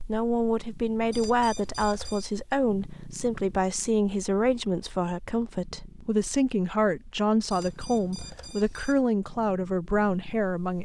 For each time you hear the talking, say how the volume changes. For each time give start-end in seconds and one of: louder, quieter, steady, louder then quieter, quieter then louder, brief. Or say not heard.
0.0-10.8 steady.